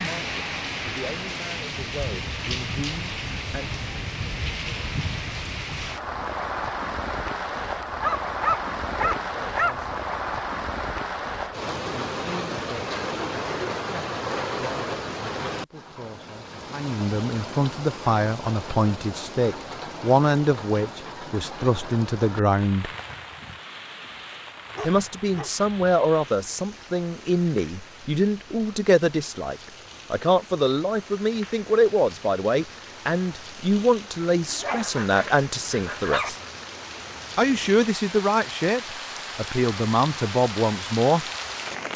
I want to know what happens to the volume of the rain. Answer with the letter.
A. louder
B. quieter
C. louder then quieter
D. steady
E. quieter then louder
E.